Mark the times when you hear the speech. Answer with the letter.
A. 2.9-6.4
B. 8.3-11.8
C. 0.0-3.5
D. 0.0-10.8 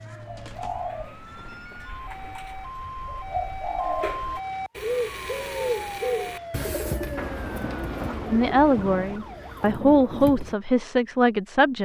B.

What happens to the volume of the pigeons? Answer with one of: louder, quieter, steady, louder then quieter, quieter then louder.
louder then quieter.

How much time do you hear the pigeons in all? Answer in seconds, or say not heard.
11 s.